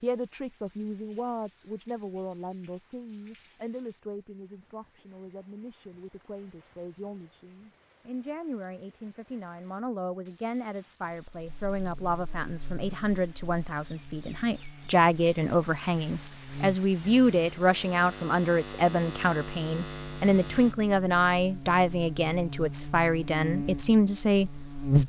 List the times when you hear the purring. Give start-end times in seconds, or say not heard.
not heard.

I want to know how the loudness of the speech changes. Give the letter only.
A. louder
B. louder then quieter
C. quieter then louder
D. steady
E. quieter
A.